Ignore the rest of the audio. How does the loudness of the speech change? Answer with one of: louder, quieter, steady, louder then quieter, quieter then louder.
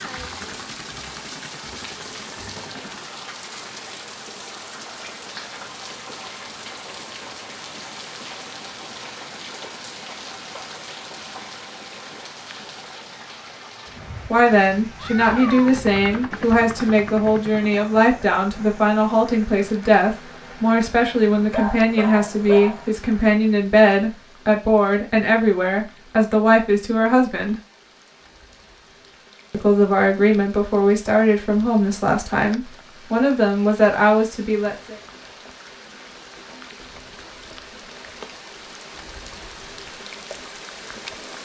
steady.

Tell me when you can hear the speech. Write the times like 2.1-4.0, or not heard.
14.3-27.6, 29.5-35.0.